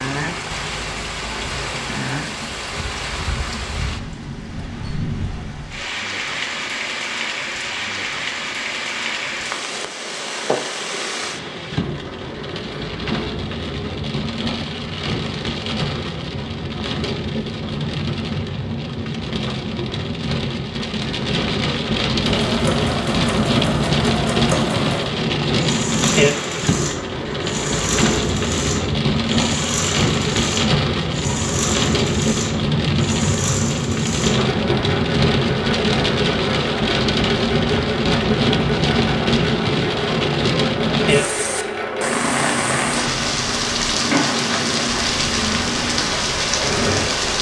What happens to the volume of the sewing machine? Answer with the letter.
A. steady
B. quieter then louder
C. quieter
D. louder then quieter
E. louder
A.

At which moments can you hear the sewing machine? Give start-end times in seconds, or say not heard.
22.2-47.3.